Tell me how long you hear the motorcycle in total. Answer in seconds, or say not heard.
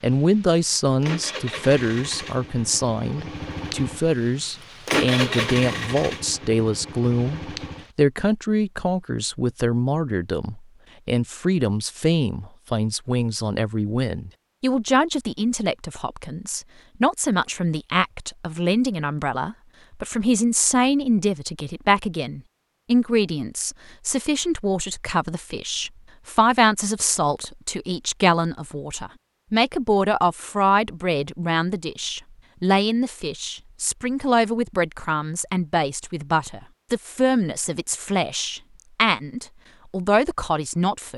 8 s.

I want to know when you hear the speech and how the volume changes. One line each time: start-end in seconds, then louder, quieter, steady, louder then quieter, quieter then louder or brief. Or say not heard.
0.0-41.1 steady.